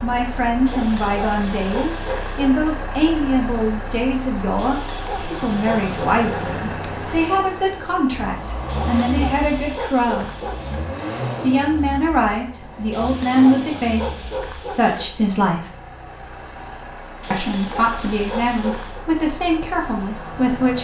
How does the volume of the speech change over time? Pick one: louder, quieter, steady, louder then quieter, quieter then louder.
steady.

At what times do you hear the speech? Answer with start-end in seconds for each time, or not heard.
0.0-10.4, 11.4-15.7, 17.3-20.7.